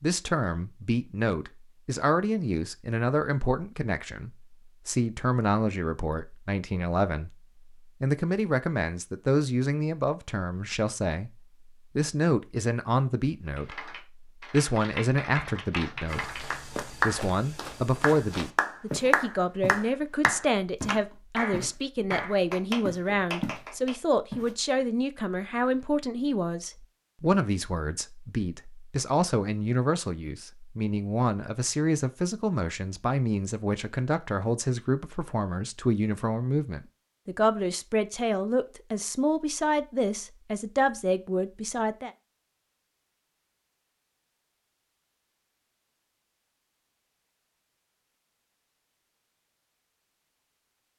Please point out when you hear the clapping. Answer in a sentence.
The clapping can be heard from 13.6 to 23.9 s.